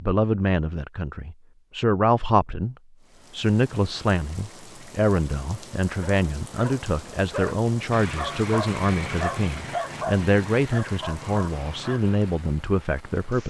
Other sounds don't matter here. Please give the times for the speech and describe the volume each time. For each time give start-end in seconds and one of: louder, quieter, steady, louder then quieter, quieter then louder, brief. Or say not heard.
0.0-13.4 steady.